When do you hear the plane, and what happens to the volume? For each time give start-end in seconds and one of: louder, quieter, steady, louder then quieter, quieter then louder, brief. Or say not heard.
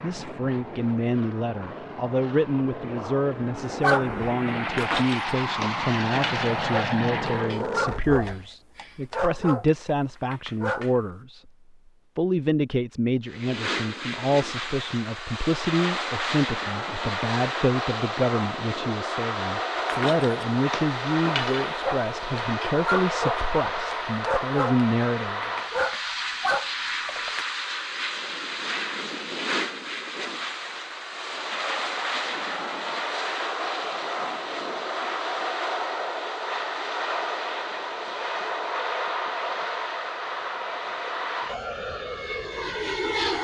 0.0-8.2 louder
13.2-43.3 steady.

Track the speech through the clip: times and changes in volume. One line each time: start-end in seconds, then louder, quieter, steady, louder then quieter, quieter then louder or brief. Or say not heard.
0.0-11.5 steady
12.2-25.4 steady.